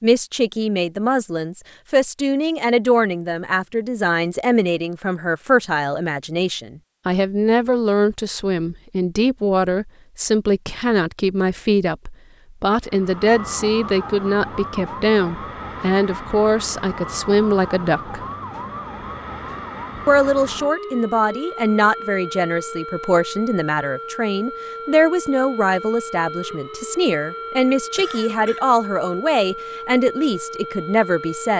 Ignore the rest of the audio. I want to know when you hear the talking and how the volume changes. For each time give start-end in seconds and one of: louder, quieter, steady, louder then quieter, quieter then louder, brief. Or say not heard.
0.0-18.2 steady
20.1-31.5 steady.